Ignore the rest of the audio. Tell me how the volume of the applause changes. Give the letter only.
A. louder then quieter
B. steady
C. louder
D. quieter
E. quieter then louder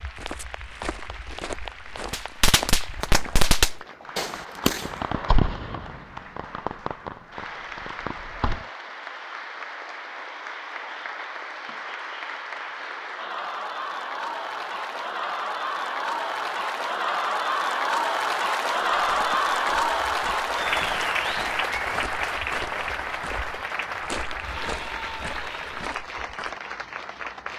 A.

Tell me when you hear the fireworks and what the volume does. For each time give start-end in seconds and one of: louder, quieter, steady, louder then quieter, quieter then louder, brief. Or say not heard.
2.1-8.7 quieter.